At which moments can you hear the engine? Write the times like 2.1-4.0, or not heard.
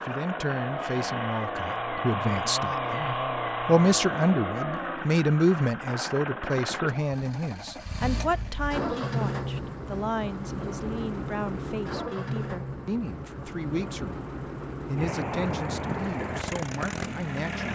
0.0-17.6.